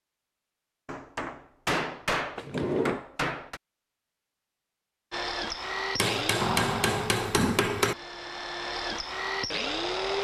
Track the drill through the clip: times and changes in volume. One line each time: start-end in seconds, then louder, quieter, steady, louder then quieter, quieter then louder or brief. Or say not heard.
5.1-10.1 quieter then louder.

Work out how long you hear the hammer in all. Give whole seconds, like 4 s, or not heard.
5 s.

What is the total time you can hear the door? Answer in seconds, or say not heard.
2 s.